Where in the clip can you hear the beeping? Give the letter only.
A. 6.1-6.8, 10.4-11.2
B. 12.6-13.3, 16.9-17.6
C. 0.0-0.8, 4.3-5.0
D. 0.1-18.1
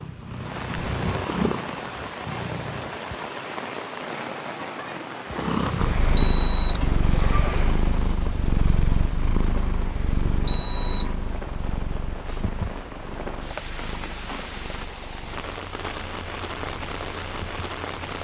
A.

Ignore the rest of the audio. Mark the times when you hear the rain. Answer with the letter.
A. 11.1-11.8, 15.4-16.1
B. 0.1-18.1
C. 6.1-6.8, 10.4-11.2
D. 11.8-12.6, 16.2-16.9
B.